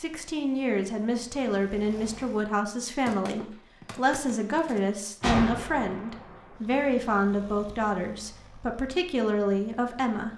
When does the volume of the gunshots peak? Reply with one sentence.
The loudest moment of the gunshots is at 5 seconds.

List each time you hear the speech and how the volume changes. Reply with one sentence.
The speech can be heard from 0.0 to 10.3 s, at a steady volume.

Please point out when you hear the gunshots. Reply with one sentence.
The gunshots can be heard from 3.0 to 6.5 s.